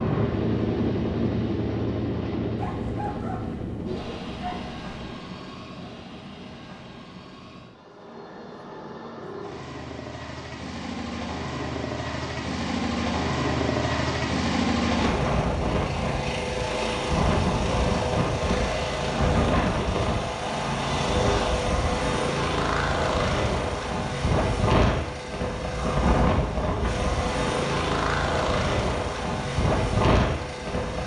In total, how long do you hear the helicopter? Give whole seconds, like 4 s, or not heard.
31 s.